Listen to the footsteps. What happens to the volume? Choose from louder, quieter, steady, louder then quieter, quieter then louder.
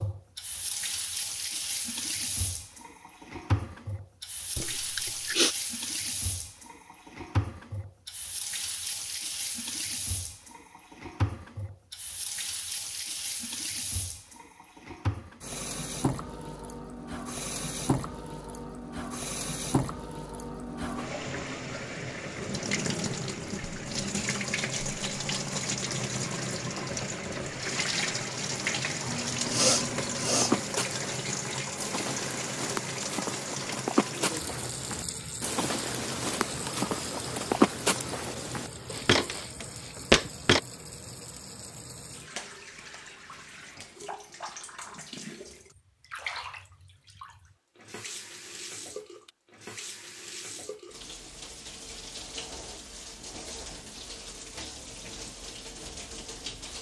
louder.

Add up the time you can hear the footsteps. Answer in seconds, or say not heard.
10 s.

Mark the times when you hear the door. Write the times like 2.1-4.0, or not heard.
not heard.